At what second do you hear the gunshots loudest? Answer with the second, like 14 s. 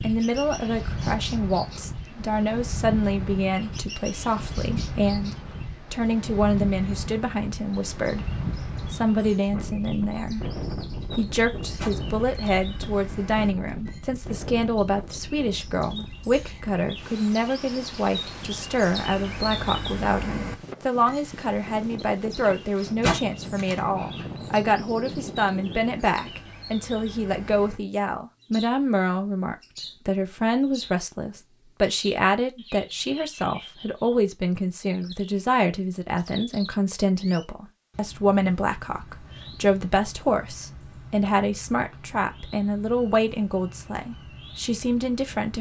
23 s.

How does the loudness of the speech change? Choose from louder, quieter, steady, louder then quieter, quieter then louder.
steady.